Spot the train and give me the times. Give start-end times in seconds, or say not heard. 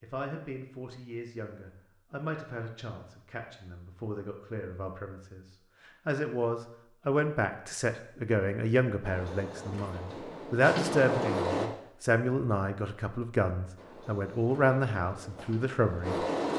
9.0-11.7, 13.8-16.5.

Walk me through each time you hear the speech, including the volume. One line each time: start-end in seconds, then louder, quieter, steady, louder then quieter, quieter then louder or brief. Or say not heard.
0.0-16.2 louder.